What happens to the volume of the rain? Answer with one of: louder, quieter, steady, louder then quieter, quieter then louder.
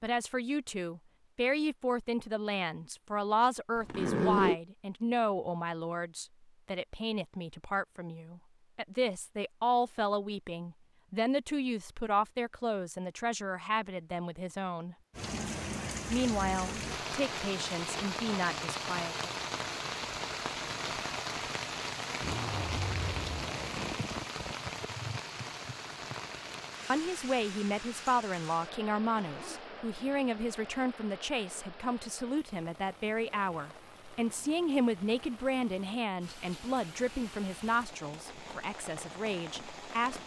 quieter.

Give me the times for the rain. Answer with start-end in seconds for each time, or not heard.
15.1-40.2.